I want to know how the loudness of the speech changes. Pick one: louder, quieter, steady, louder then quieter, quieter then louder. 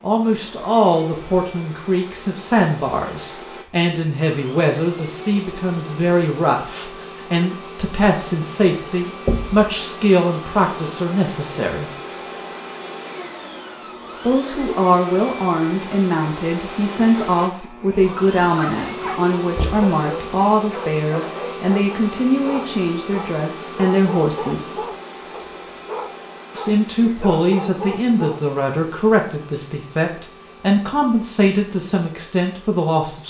steady.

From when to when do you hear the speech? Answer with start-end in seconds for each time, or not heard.
0.0-11.9, 14.2-24.8, 26.6-33.2.